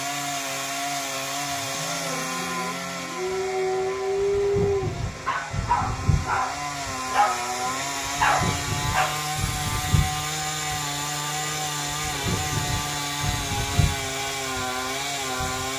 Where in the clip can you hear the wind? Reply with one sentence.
You can hear the wind from 3.2 to 15.7 s.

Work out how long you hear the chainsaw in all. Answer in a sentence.
You can hear the chainsaw for 16 seconds altogether.